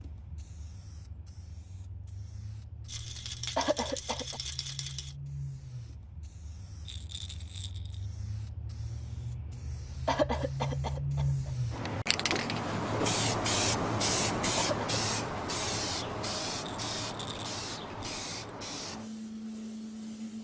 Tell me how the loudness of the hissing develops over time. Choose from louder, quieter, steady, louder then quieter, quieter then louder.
louder then quieter.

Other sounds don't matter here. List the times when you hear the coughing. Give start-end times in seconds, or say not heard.
3.5-4.4, 10.1-11.5, 14.6-15.0.